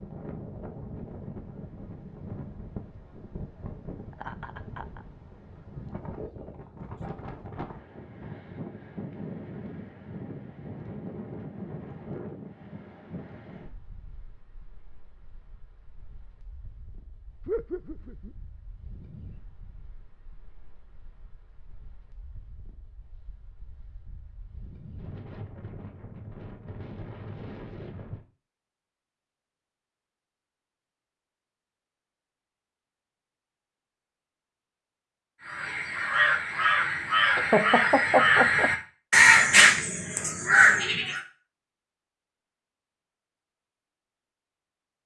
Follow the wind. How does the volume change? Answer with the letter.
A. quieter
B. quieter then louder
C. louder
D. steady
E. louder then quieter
B.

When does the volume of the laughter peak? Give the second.
38 s.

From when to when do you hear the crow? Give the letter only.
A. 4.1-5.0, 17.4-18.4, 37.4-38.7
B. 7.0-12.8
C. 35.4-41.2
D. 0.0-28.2
C.